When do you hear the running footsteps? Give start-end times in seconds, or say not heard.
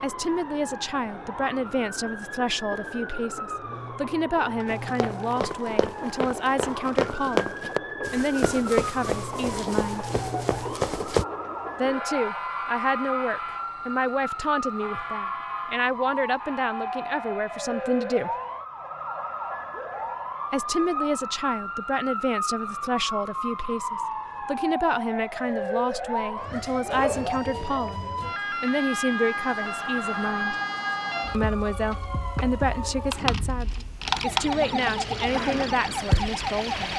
4.7-11.2.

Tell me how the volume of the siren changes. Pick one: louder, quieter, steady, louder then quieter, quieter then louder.
louder.